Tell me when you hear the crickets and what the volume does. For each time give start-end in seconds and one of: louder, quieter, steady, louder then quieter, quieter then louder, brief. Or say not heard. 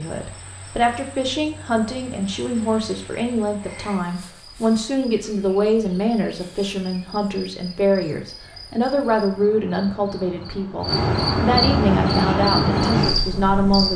0.0-13.9 louder.